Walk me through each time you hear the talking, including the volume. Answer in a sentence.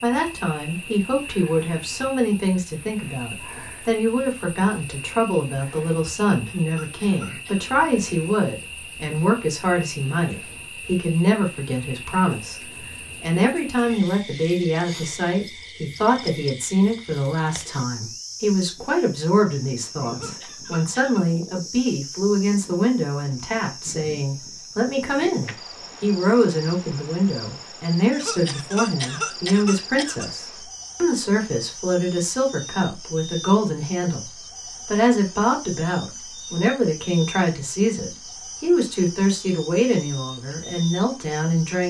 The talking can be heard from 0.0 to 41.8 s, at a steady volume.